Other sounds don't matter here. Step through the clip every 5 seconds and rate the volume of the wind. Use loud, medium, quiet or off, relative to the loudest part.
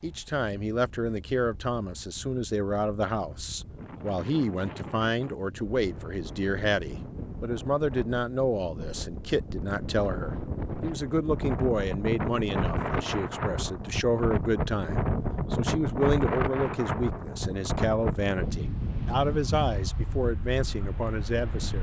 quiet, medium, loud, loud, medium.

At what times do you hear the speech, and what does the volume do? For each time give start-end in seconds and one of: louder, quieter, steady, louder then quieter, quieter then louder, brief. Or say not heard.
0.0-21.7 steady.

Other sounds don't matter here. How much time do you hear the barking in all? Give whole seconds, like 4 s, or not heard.
not heard.